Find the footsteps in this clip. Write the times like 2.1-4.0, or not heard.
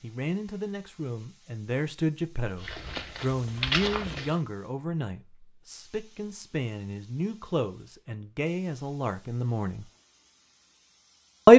2.6-4.3.